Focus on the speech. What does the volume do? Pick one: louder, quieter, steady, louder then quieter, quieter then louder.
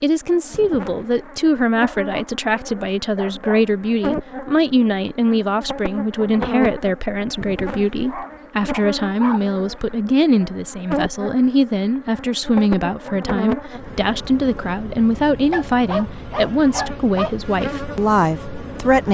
steady.